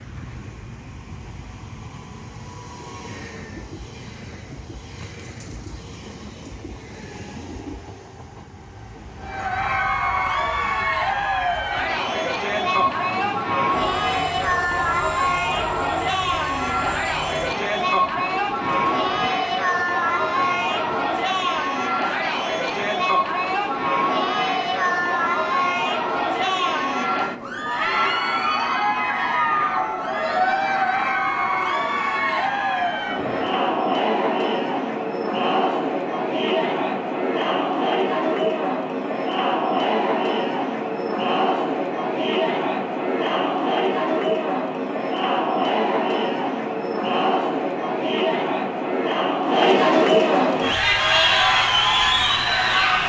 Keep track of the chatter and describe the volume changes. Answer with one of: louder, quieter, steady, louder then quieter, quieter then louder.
steady.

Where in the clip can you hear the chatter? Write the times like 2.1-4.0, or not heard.
9.2-53.0.